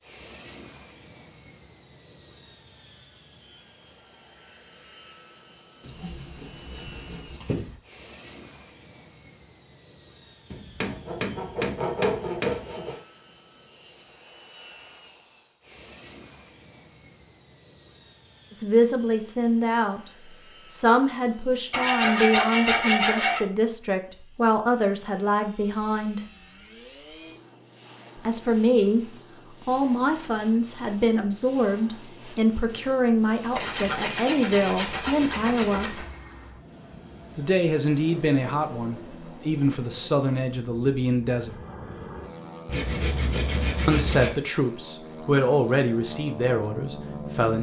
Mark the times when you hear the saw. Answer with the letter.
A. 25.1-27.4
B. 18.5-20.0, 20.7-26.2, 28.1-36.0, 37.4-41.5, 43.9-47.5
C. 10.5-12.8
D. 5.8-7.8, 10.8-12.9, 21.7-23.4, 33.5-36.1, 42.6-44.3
D.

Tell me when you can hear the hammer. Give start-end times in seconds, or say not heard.
10.5-12.8.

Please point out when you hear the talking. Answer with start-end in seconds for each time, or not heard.
18.5-20.0, 20.7-26.2, 28.1-36.0, 37.4-41.5, 43.9-47.5.